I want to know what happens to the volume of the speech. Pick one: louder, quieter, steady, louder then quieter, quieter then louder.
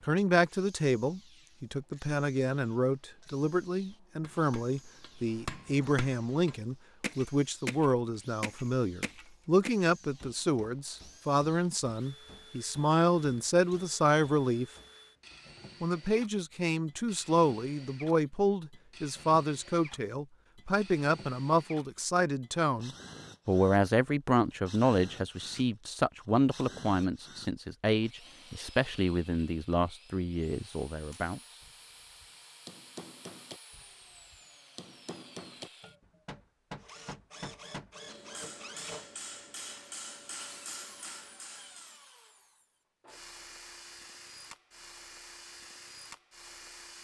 steady.